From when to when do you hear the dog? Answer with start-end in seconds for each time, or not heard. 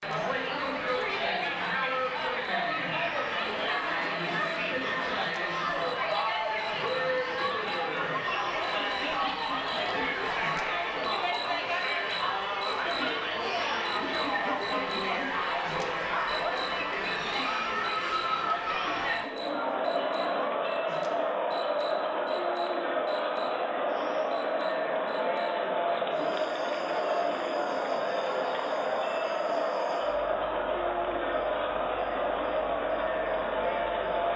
not heard.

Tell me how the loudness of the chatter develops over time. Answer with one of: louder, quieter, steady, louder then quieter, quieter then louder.
steady.